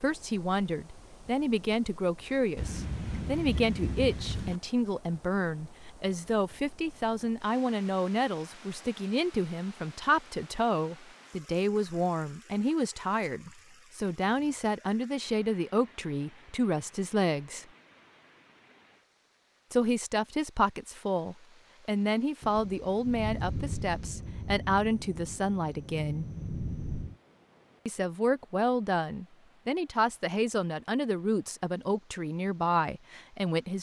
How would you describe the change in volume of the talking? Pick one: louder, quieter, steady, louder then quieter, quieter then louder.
steady.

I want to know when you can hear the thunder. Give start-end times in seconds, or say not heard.
2.5-4.6, 22.4-27.1.